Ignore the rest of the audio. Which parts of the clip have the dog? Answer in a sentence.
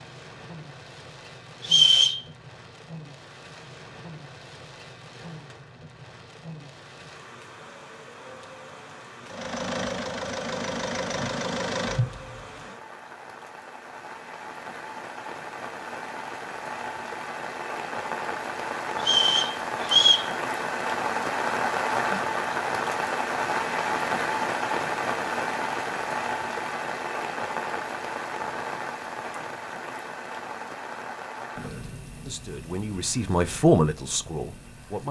The dog can't be heard in this clip.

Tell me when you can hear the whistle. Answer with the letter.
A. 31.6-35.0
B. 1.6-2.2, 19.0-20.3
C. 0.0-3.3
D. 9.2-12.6
B.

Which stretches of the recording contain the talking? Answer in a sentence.
The talking can be heard from 31.6 to 35.0 s.